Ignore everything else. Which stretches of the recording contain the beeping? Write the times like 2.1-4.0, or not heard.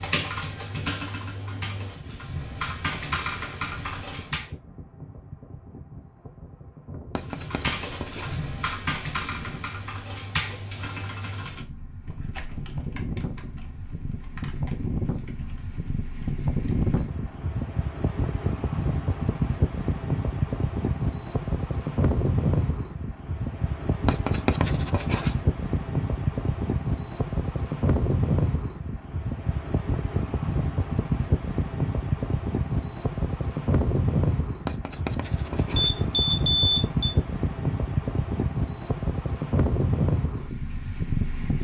35.8-37.1.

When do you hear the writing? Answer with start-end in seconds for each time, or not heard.
7.2-8.4, 24.1-25.4, 34.6-36.0.